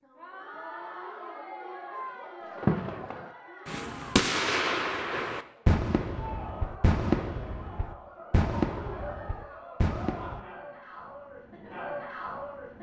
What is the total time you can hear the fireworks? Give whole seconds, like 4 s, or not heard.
8 s.